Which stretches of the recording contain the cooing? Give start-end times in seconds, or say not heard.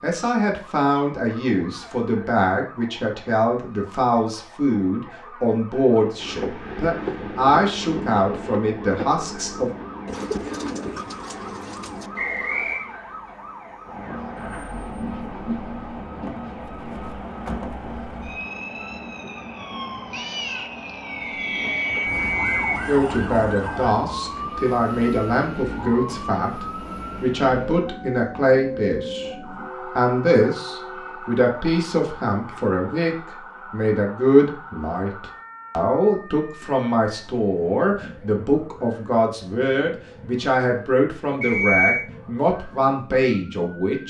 10.1-12.1.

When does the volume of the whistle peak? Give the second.
42 s.